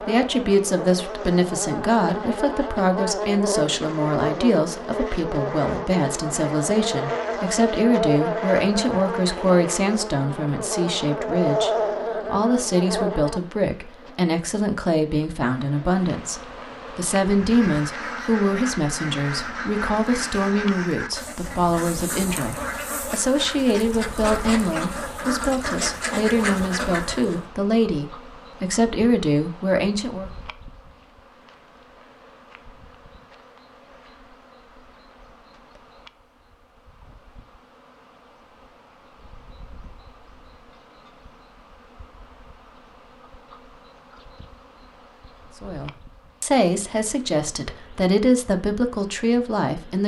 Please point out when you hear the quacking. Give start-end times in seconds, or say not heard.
17.2-27.4.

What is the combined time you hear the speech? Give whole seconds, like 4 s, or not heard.
35 s.